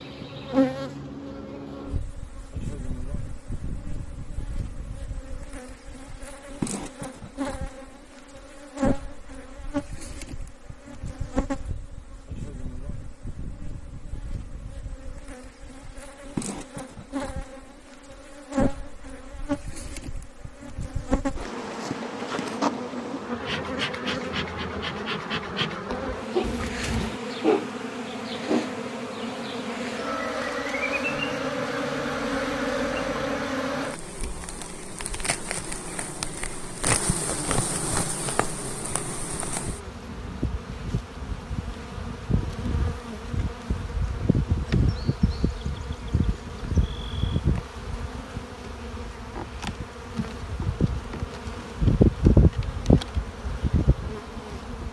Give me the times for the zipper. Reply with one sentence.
You can hear the zipper from 26.4 to 27.2 s.